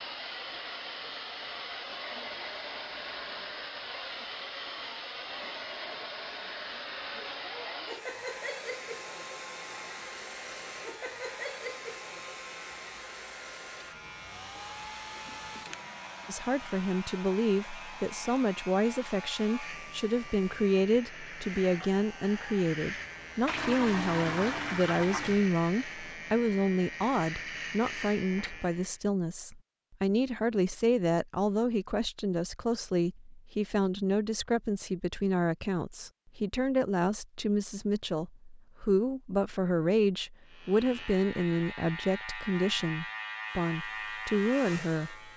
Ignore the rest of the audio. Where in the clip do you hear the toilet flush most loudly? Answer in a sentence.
The loudest moment of the toilet flush is at 24 seconds.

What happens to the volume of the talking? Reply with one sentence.
The volume of the talking stays about the same.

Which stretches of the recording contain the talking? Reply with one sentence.
You can hear the talking from 16.2 to 45.3 s.